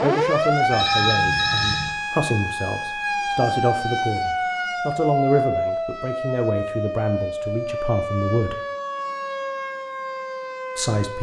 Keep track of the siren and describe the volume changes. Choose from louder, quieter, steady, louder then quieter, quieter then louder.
quieter.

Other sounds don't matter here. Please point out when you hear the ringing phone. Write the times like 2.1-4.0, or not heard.
0.7-1.9.